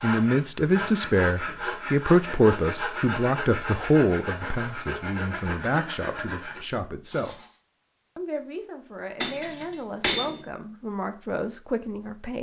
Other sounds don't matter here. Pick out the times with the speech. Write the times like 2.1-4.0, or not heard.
0.0-7.4, 8.2-12.3.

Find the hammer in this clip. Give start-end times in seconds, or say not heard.
9.2-10.3.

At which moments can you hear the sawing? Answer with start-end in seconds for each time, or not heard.
0.0-7.5.